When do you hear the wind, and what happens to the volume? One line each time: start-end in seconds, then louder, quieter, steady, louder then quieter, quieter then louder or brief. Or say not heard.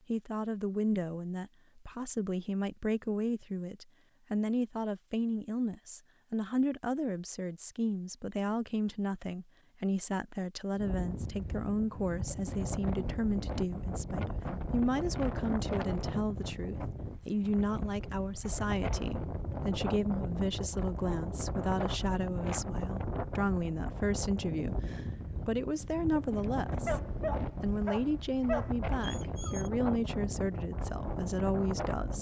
10.7-32.1 steady.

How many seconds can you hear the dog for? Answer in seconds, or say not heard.
3 s.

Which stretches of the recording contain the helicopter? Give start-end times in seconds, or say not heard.
not heard.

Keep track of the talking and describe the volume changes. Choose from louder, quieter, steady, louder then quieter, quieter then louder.
steady.